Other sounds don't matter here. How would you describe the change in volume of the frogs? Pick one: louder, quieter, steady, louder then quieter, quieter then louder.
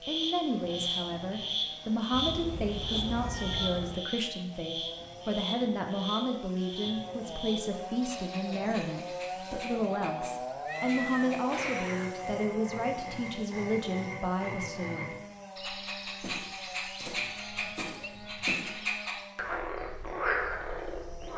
quieter then louder.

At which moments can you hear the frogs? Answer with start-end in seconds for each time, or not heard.
0.0-21.3.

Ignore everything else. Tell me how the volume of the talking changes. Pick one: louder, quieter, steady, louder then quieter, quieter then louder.
steady.